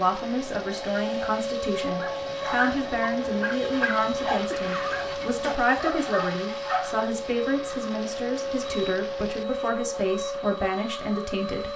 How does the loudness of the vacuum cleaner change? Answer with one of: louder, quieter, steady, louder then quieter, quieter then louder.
steady.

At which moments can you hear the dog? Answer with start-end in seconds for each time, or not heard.
1.9-7.0.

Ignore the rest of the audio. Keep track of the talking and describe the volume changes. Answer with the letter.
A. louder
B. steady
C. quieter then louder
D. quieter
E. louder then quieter
B.